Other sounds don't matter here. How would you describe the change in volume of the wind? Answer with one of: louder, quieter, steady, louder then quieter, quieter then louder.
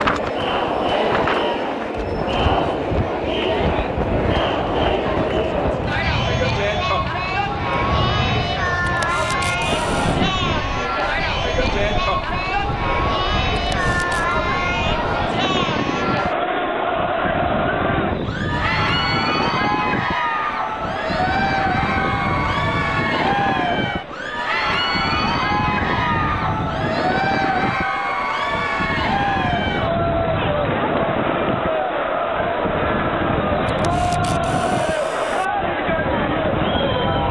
steady.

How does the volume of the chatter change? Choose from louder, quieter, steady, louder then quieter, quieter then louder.
steady.